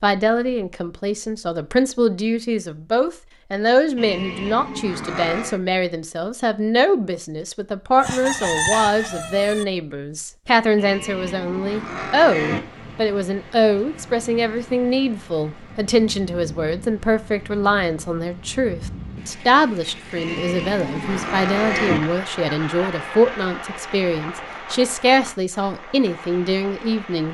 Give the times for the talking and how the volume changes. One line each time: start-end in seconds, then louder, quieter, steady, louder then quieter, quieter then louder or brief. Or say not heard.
0.0-27.2 steady.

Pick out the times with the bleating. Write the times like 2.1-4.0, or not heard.
4.0-5.6, 10.8-12.6, 20.1-22.0.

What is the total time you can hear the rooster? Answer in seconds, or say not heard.
3 s.